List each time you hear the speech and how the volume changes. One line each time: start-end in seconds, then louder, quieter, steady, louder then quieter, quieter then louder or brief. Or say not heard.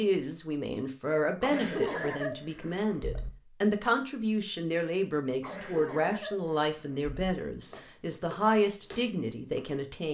0.0-10.0 steady.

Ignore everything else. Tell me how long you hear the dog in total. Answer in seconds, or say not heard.
not heard.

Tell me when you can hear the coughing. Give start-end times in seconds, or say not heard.
1.4-3.3, 5.4-7.3.